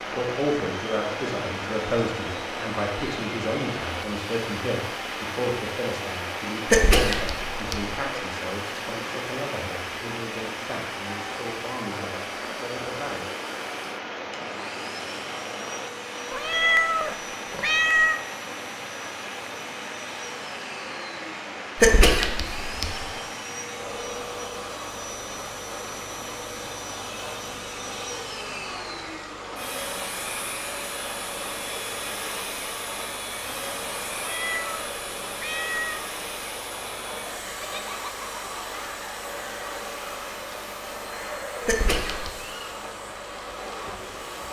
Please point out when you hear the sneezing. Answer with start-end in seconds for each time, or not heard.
6.7-8.0, 21.8-23.1, 41.6-42.4.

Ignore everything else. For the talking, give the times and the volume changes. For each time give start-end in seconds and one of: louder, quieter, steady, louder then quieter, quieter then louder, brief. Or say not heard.
0.1-13.2 quieter.